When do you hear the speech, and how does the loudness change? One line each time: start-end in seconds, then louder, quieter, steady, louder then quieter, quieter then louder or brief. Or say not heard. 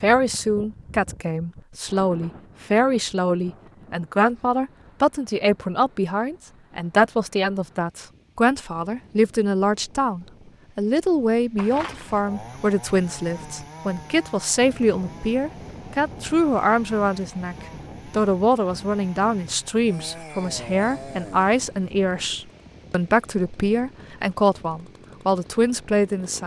0.0-26.4 steady.